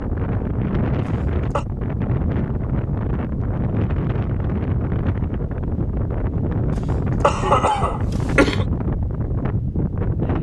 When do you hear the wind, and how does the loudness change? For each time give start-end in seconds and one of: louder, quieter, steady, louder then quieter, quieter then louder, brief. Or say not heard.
0.0-10.3 steady.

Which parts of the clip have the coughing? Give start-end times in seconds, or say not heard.
1.0-1.6, 6.7-8.7.